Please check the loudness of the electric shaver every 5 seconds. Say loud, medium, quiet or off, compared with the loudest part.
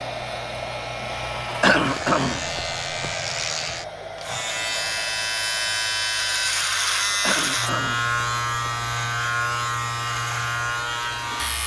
medium, loud, loud.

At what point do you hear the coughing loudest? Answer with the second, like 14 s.
2 s.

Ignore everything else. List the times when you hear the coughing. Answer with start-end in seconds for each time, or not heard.
1.5-3.1, 7.1-8.7.